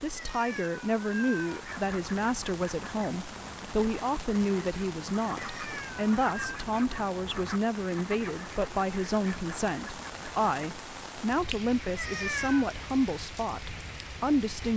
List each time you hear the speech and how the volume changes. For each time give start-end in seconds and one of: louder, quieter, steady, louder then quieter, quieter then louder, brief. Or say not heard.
0.0-14.7 steady.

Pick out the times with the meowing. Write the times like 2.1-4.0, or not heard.
0.1-1.6, 5.3-6.6, 11.9-12.7.